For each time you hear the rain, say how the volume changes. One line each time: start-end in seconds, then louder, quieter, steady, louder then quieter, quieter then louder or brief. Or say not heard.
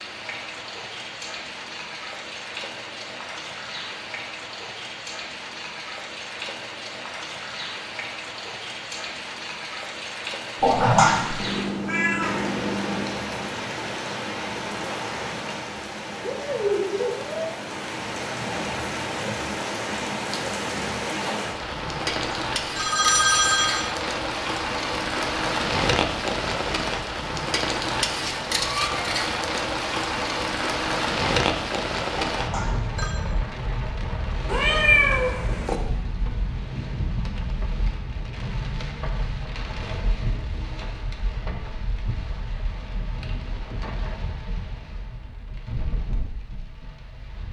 0.0-47.4 louder then quieter.